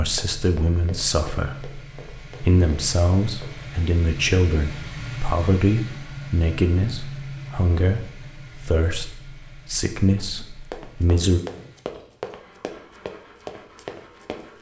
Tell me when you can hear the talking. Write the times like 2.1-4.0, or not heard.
0.0-11.4.